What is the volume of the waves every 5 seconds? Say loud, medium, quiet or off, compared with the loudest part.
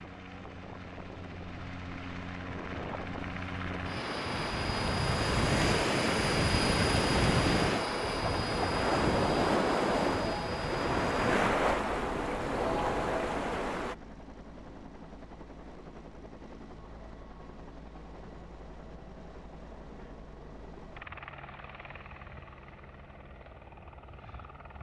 medium, loud, loud, off, off.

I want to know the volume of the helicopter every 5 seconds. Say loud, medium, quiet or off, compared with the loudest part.
medium, loud, medium, quiet, quiet.